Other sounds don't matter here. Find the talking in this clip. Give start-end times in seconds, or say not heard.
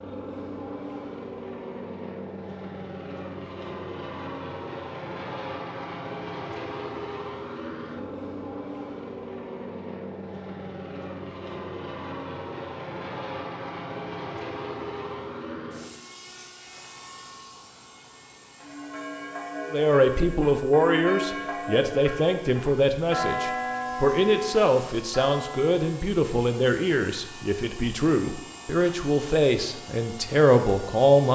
19.7-31.3.